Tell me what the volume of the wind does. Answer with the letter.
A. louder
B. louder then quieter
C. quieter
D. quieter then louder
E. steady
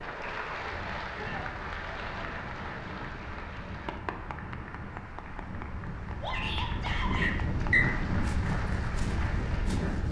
A.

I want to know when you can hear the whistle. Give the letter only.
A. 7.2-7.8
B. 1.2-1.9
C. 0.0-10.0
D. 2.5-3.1
A.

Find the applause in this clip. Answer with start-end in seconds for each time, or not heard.
0.0-10.0.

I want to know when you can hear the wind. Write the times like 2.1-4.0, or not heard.
0.0-10.0.